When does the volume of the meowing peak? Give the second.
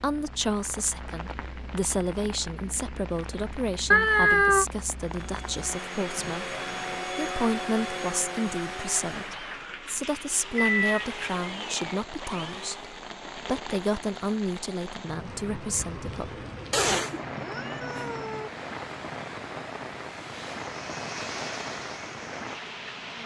4 s.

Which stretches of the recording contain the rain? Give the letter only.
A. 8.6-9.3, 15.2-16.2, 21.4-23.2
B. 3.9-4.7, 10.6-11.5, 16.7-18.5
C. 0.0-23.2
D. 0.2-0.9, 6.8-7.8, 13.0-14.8
C.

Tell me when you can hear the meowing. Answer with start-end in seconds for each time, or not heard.
3.9-4.7, 10.6-11.5, 16.7-18.5.